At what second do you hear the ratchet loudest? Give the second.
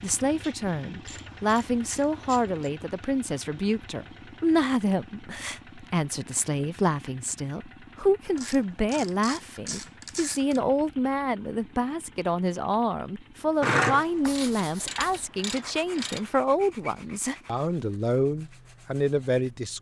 14 s.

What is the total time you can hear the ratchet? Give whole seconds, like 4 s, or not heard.
7 s.